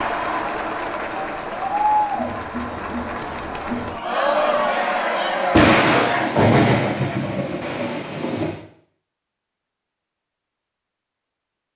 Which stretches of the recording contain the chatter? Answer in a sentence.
You can hear the chatter from 0.0 to 6.3 s.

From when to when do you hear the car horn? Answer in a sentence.
The car horn can't be heard in this clip.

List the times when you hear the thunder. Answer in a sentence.
You can hear the thunder from 5.5 to 8.6 s.